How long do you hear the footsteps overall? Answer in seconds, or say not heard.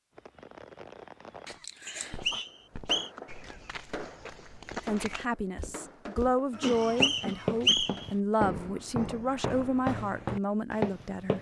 9 s.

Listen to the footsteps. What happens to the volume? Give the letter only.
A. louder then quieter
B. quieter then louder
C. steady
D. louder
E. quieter
D.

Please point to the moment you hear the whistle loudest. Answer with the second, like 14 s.
8 s.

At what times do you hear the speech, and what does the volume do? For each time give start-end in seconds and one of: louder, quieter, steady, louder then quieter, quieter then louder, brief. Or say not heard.
4.8-11.3 steady.